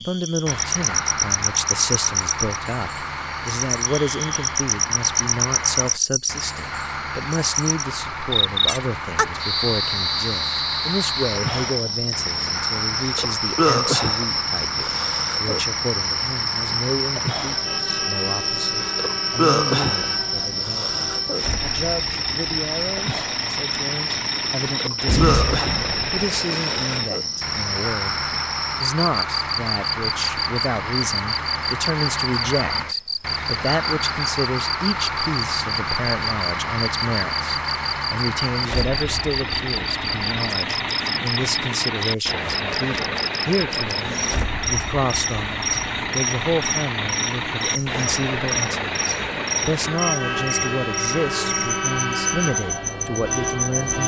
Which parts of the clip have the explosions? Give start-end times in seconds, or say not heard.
25.1-26.2.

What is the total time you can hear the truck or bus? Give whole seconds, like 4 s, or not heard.
54 s.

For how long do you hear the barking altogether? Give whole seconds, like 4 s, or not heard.
not heard.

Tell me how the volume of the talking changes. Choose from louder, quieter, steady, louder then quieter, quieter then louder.
steady.